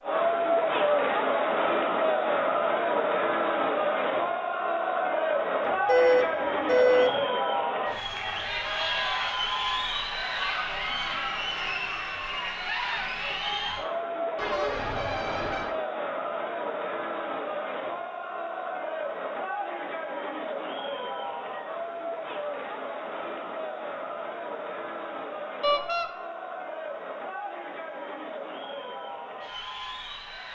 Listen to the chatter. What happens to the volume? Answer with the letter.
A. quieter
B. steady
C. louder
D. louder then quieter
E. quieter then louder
A.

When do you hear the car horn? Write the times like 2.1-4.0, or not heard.
5.6-7.2, 14.3-15.7, 25.6-26.1.